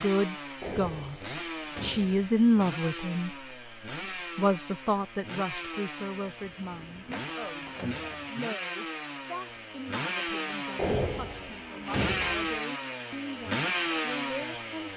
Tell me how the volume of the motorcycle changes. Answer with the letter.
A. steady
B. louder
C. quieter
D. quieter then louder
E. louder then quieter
B.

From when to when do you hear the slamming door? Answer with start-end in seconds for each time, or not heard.
0.6-2.1, 7.1-8.3, 10.8-12.6.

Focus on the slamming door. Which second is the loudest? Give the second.
11 s.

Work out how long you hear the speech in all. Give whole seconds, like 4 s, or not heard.
13 s.